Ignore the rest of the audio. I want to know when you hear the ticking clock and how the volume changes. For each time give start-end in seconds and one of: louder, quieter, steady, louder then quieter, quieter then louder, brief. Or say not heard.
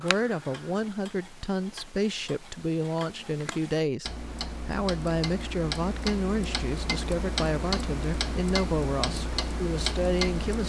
0.0-10.6 louder.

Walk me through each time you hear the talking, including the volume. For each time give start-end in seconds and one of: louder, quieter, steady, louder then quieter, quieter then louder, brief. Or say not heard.
0.0-10.6 steady.